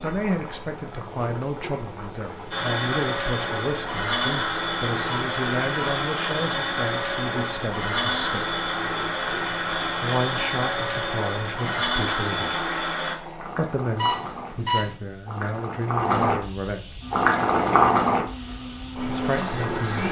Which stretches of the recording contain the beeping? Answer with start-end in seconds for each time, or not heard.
5.0-6.0, 13.9-14.9.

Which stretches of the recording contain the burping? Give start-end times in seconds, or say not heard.
not heard.